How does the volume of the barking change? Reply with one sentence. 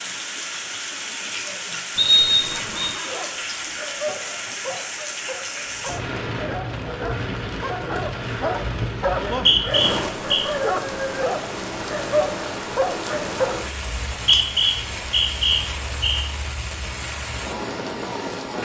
The loudness of the barking goes up.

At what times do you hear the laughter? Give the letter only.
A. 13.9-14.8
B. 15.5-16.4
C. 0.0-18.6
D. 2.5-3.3
D.